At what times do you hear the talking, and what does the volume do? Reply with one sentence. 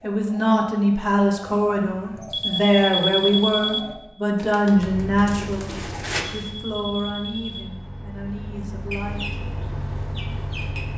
You can hear the talking from 0.0 to 9.4 s, getting quieter.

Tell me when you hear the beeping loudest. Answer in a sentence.
The volume of the beeping peaks at 3 seconds.